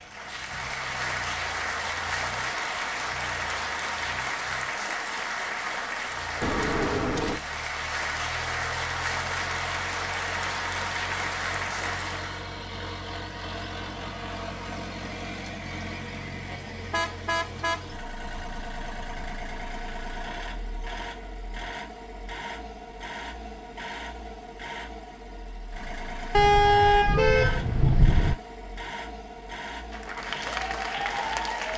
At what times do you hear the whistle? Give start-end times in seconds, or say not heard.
not heard.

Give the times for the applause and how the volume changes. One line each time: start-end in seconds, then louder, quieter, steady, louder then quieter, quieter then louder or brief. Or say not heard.
0.0-12.5 steady
29.9-31.7 brief.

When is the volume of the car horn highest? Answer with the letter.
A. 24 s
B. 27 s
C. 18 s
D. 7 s
B.